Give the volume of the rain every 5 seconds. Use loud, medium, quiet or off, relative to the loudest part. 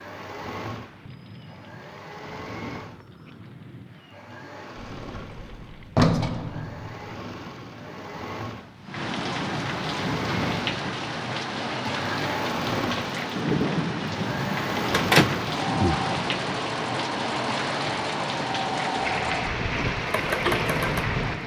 quiet, medium, loud, loud, loud.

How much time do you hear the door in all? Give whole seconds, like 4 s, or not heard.
3 s.